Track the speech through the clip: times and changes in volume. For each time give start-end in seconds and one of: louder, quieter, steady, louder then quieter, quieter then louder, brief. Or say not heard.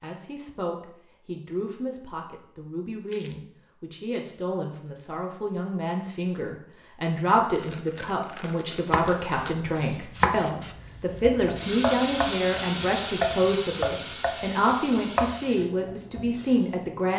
0.0-17.1 louder.